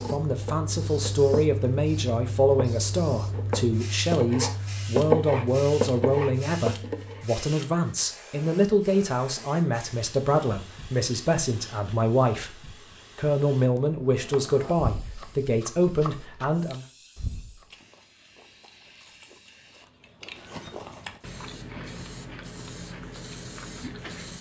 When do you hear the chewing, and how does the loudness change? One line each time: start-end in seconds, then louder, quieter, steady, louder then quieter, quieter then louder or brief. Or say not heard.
17.6-24.3 louder.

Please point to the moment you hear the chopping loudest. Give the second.
5 s.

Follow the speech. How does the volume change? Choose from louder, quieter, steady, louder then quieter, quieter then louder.
steady.